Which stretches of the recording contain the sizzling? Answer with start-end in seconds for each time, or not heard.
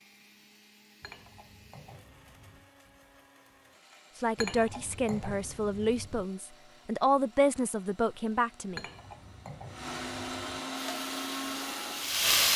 10.7-12.5.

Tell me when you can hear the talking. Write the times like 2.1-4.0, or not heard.
4.2-8.8.